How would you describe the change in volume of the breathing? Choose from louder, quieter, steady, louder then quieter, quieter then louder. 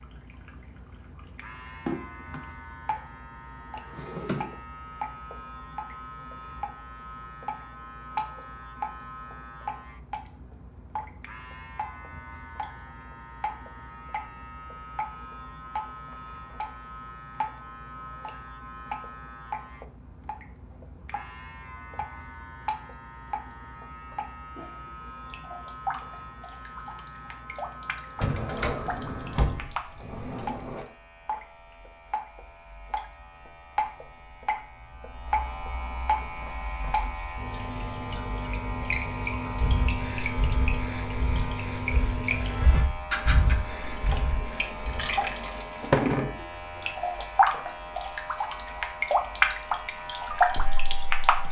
louder then quieter.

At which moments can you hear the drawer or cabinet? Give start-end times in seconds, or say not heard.
3.9-4.5, 28.1-30.9.